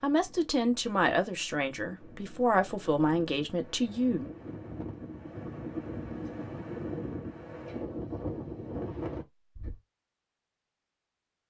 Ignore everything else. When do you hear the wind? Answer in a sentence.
The wind can be heard from 0.0 to 9.8 s.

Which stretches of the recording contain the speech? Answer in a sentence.
The speech can be heard from 0.0 to 4.3 s.